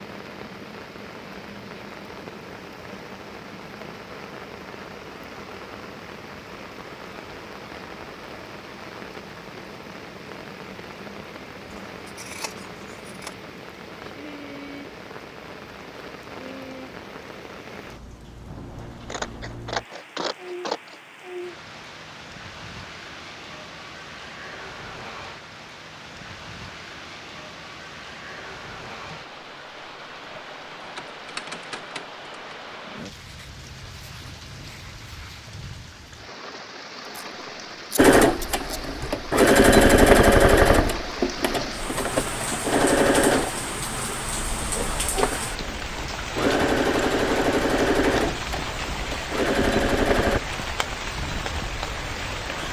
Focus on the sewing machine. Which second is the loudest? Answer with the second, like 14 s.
40 s.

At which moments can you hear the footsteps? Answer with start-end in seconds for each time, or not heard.
not heard.